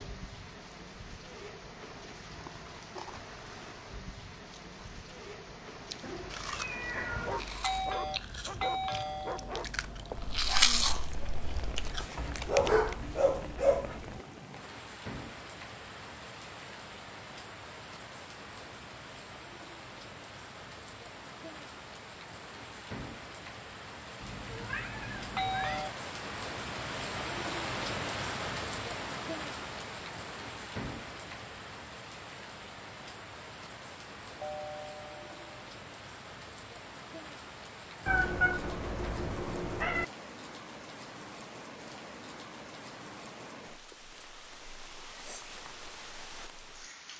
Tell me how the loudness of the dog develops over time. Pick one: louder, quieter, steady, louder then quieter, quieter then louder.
louder.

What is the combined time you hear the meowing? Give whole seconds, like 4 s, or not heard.
5 s.